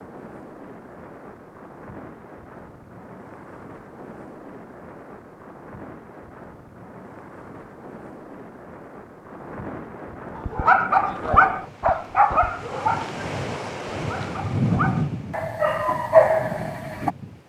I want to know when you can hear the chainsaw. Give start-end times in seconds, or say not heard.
not heard.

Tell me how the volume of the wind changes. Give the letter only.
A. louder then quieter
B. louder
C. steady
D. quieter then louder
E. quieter
B.